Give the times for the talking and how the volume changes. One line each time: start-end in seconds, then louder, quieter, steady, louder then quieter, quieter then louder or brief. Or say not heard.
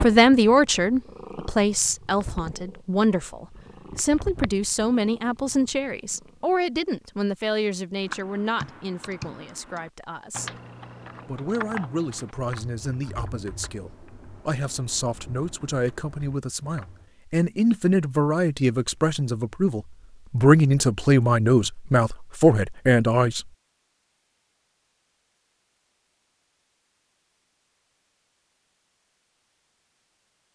0.0-10.5 quieter
11.2-23.4 louder.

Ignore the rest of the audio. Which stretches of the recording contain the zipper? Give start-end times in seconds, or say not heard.
not heard.